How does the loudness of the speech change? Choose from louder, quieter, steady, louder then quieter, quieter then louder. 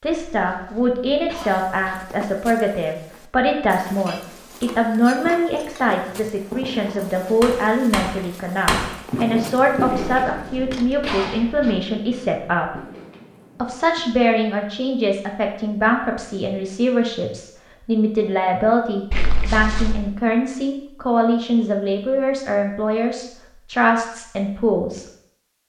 steady.